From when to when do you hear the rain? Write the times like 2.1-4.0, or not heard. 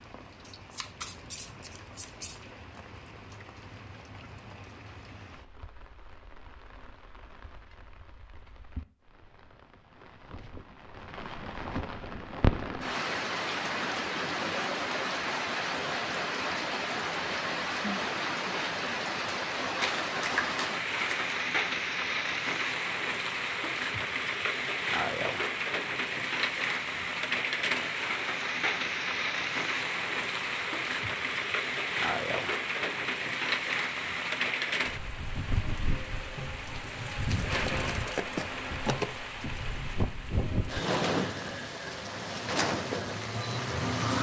0.0-44.1.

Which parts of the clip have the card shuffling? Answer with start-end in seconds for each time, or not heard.
0.5-2.4, 19.8-21.2, 37.3-39.1.